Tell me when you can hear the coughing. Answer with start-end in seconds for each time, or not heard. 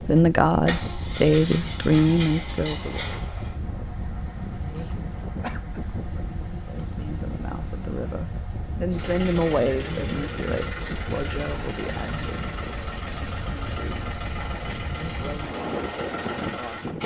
5.4-5.8.